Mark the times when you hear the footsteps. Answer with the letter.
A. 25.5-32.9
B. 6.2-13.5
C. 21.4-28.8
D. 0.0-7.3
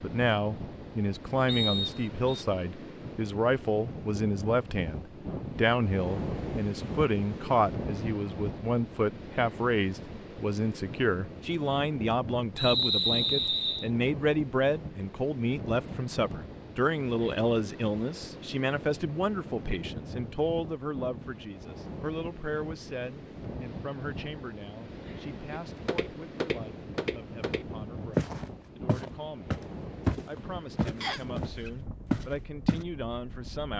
A.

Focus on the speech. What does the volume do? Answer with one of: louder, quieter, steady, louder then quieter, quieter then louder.
quieter.